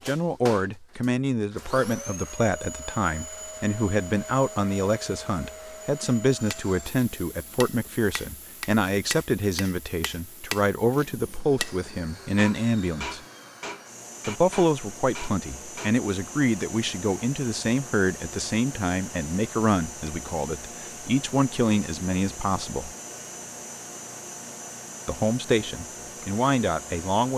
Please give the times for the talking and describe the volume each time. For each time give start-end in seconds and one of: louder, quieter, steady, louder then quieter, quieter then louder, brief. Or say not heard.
0.1-13.2 steady
14.2-22.9 steady
25.1-27.3 brief.